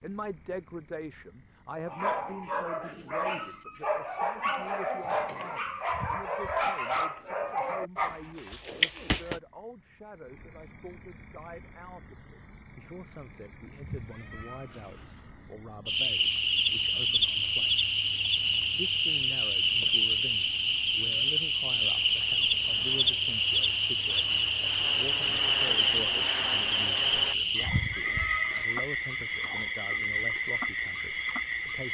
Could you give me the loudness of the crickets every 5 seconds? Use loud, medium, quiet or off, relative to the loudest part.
quiet, quiet, quiet, loud, loud, loud, loud.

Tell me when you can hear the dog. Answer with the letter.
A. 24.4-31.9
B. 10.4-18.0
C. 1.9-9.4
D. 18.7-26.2
C.